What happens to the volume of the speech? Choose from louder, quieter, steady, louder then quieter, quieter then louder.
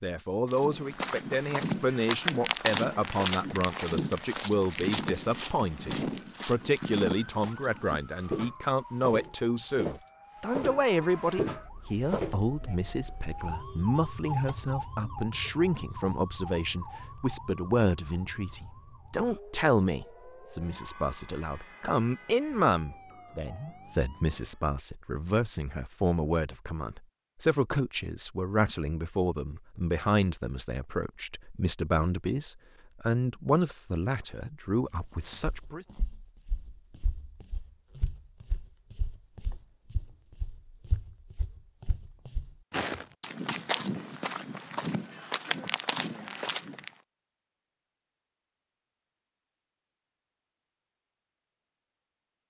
steady.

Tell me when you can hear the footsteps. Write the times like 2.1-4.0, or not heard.
0.5-12.4, 35.0-46.9.